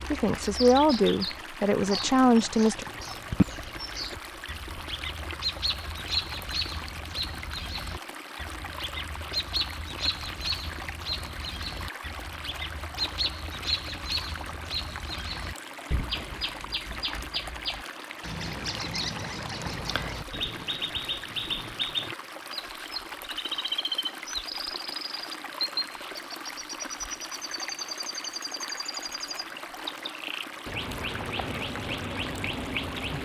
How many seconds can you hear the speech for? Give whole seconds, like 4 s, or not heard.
3 s.